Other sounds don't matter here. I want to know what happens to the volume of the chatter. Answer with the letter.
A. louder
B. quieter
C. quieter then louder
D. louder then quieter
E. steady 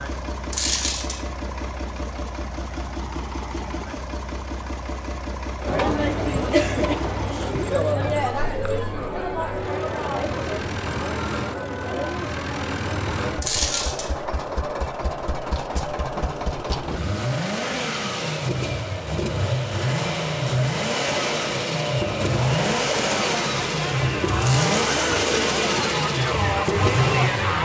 C.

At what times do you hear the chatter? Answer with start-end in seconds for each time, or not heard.
5.6-27.6.